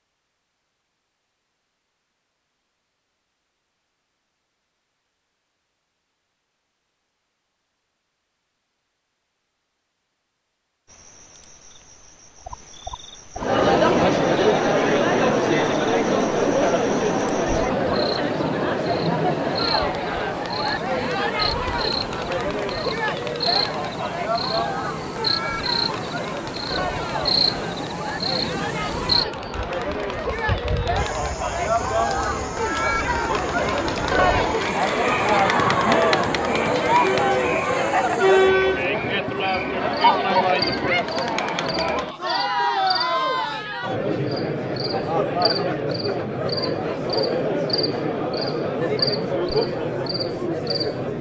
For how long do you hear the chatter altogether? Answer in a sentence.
The chatter can be heard for 38 seconds in total.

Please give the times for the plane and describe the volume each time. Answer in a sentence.
You can't hear the plane here.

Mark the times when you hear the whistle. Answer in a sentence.
You can't hear the whistle here.